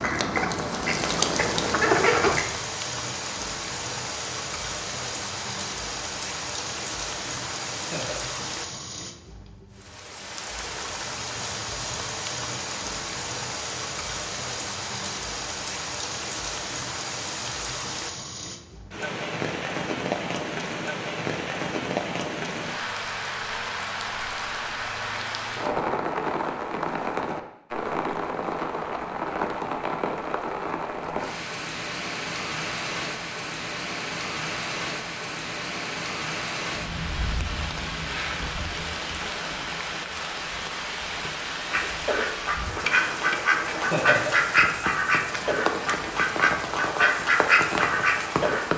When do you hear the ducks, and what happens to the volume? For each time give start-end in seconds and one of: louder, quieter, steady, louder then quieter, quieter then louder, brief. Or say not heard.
0.0-2.5 brief
41.7-48.7 steady.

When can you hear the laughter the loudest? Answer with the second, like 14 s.
44 s.